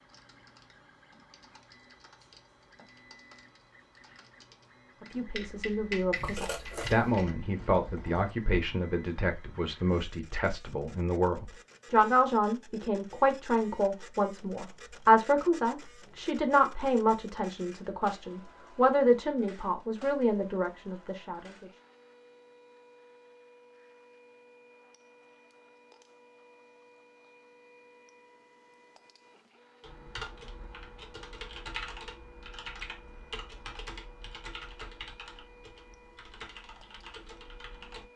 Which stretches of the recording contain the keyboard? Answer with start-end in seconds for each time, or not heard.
0.1-8.3, 29.8-38.0.